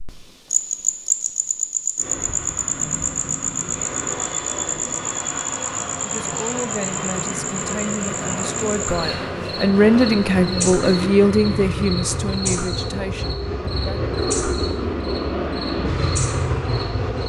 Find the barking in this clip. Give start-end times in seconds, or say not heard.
not heard.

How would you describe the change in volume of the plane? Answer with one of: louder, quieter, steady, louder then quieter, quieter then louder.
louder.